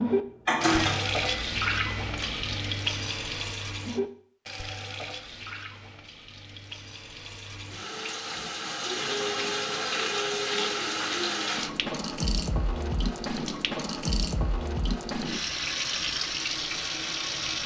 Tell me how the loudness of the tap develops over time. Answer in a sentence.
The loudness of the tap goes down, then up.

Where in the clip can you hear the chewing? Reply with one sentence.
The chewing can't be heard in this clip.